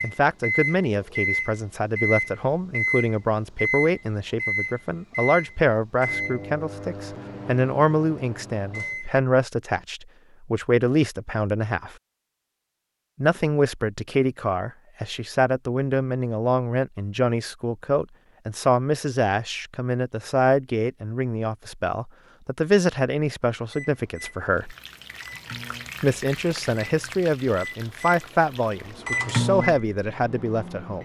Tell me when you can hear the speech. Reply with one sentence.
The speech can be heard from 0.0 to 11.9 s, from 13.2 to 24.8 s and from 26.0 to 31.0 s.